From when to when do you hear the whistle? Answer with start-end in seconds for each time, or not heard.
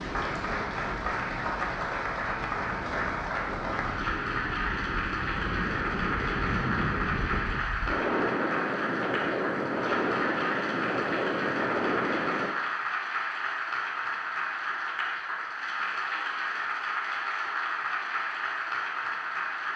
not heard.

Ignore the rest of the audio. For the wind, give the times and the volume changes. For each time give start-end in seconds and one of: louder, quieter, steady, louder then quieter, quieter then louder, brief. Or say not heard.
0.0-12.6 louder.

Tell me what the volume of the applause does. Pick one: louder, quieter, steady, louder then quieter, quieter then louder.
steady.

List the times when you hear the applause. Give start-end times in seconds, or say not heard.
0.0-19.7.